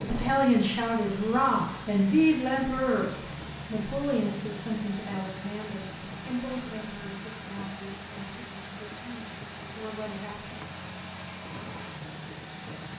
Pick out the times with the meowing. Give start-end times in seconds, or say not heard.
not heard.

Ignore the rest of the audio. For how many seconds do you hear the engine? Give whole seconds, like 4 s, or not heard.
13 s.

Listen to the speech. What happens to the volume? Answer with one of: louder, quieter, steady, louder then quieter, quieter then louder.
quieter.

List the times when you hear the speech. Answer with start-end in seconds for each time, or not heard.
0.0-10.6.